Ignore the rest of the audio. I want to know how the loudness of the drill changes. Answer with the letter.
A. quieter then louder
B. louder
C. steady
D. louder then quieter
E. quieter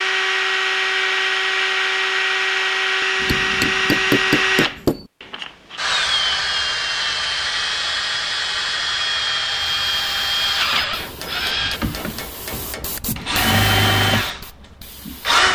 C.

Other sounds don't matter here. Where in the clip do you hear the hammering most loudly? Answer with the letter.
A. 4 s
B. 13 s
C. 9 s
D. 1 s
A.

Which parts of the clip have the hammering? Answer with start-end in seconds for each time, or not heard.
3.2-5.1, 10.9-13.0.